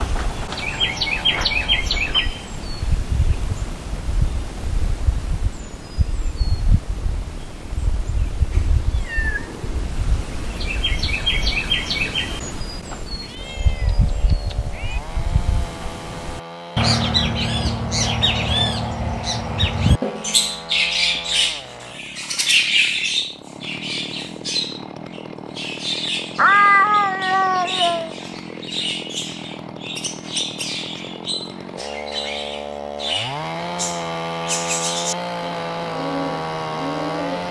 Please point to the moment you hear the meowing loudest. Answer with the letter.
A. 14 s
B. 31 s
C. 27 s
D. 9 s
C.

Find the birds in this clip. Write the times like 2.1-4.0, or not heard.
0.0-37.4.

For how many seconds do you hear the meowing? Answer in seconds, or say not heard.
5 s.